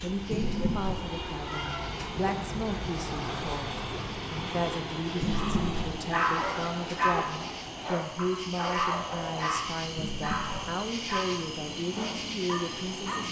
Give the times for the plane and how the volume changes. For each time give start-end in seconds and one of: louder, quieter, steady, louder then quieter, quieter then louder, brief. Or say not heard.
0.0-13.2 quieter.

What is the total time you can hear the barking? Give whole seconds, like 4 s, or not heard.
8 s.